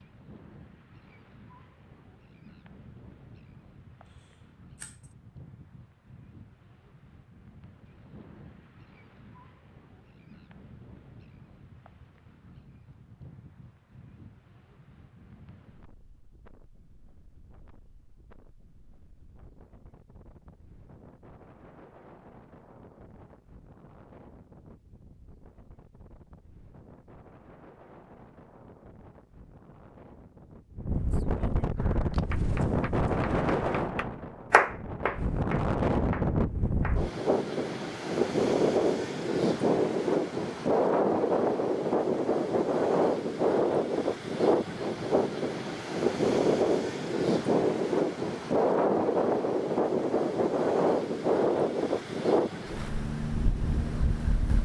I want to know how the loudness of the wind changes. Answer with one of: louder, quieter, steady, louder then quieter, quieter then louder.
louder.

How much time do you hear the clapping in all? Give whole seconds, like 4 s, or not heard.
5 s.